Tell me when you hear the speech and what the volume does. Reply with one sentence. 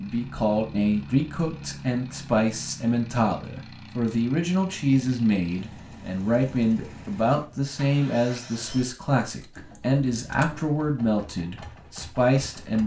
The speech can be heard from 0.0 to 12.8 s, at a steady volume.